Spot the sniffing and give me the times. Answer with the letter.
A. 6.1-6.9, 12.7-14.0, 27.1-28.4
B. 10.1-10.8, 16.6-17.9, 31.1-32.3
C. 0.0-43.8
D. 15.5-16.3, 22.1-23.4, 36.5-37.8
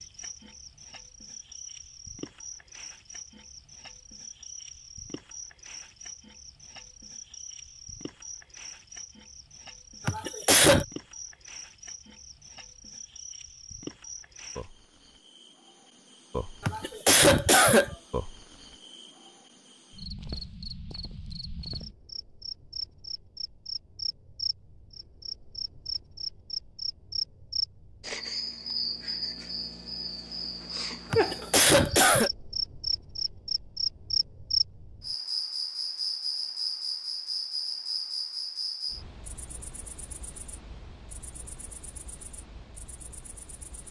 B.